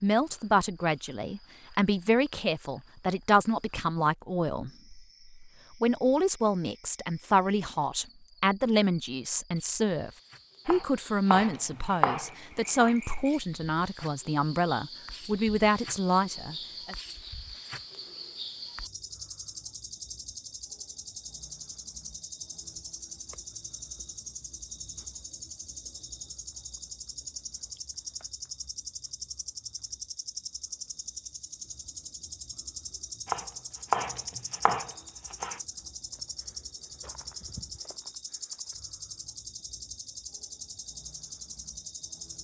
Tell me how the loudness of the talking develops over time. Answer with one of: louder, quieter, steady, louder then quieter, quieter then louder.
steady.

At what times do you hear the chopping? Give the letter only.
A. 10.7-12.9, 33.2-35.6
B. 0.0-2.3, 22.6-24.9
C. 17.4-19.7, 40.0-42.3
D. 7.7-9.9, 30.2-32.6
A.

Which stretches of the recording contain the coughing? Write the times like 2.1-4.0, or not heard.
not heard.